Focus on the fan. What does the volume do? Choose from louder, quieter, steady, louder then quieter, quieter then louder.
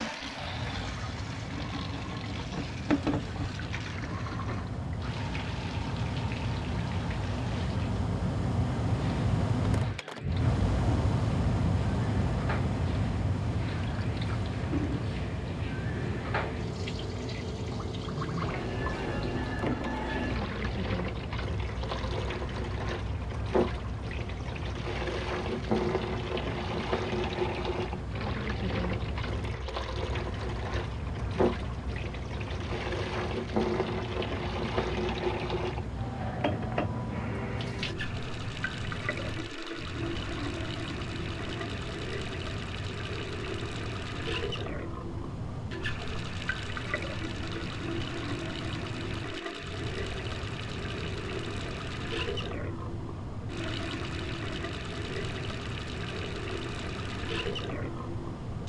quieter.